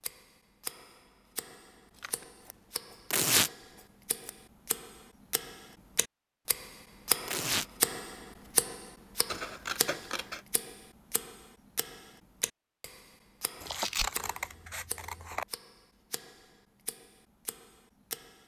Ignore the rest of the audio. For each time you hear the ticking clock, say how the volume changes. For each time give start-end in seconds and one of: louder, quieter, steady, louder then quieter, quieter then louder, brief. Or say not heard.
0.0-18.4 louder then quieter.